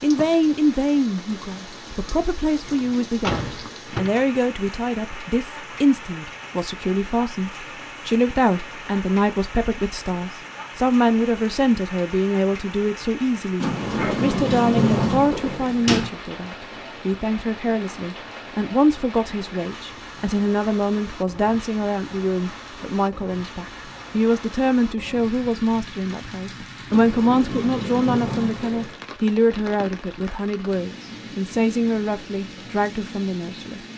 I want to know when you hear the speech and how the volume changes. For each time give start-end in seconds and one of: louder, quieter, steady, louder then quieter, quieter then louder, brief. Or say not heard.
0.0-33.8 steady.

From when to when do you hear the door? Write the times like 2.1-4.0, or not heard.
2.6-4.7, 13.6-16.1, 26.9-29.0.